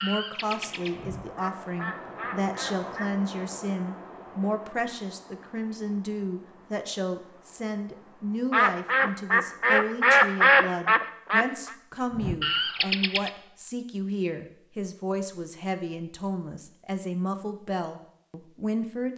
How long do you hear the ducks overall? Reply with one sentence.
You can hear the ducks for 8 seconds altogether.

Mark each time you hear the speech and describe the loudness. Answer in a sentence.
The speech can be heard from 0.0 to 19.1 s, at a steady volume.